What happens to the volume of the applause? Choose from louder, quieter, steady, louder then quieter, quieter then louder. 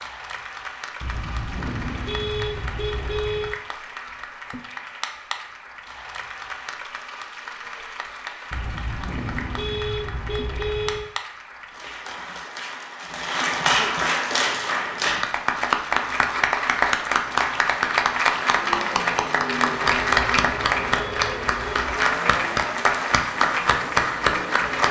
louder.